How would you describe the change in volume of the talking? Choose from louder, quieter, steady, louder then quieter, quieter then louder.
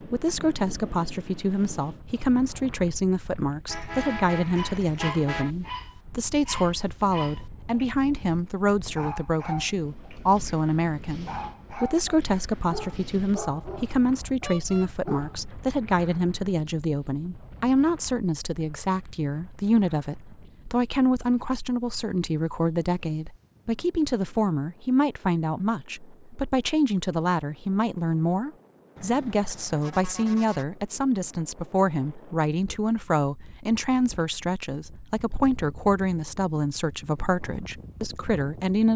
steady.